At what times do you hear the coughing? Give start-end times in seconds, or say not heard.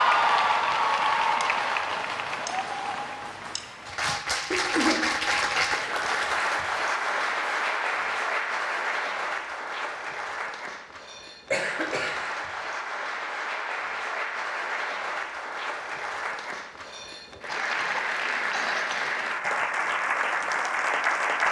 4.5-5.5, 11.5-12.2, 17.4-19.1.